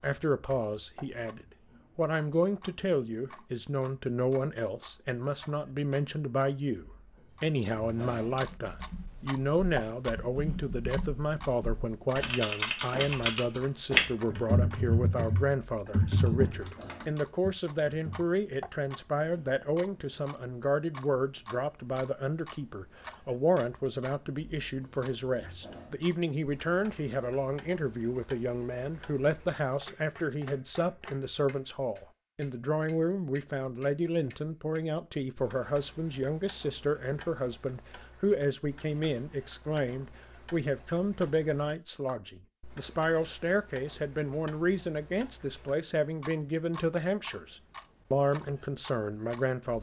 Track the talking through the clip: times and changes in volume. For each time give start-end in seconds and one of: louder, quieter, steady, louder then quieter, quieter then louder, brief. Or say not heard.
0.0-49.7 steady.